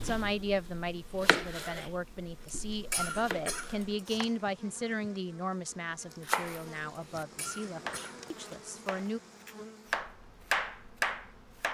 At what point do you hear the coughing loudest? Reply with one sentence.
The loudest moment of the coughing is at 3 seconds.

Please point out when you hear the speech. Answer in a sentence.
The speech can be heard from 0.0 to 9.2 s.